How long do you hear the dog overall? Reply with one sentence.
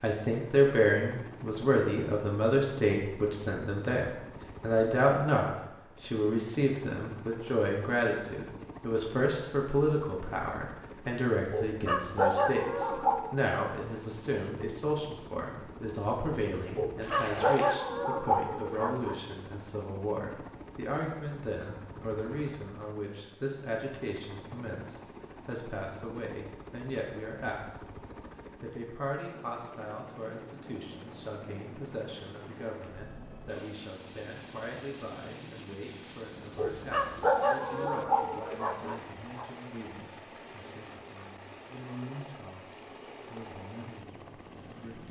The dog can be heard for 7 seconds in total.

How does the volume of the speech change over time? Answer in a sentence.
The volume of the speech goes down.